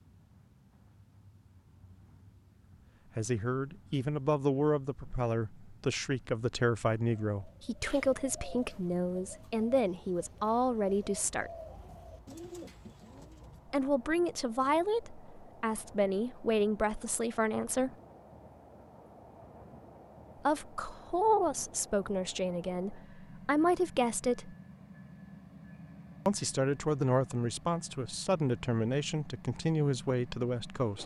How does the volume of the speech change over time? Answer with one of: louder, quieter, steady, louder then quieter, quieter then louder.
steady.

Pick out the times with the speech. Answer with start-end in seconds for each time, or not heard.
3.1-11.5, 13.7-17.9, 20.4-24.6, 26.2-31.0.